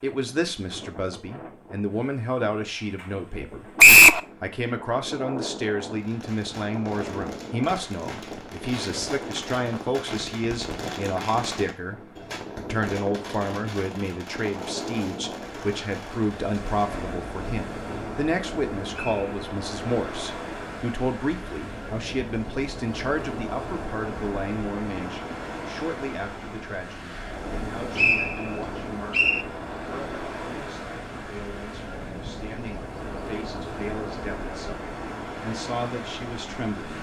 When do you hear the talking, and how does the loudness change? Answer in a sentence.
The talking can be heard from 0.0 to 36.9 s, getting quieter.